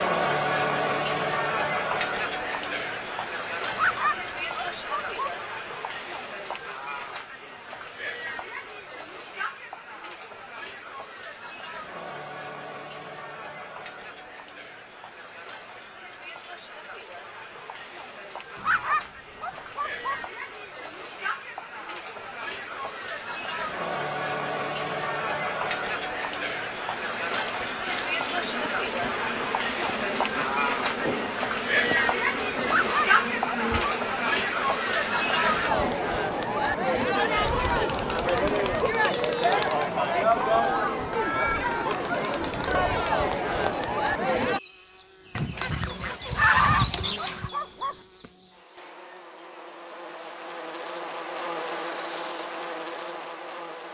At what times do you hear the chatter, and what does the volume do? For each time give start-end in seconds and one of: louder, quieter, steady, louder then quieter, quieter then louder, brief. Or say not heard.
0.0-44.6 quieter then louder.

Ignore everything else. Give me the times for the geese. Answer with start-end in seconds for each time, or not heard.
45.4-47.5.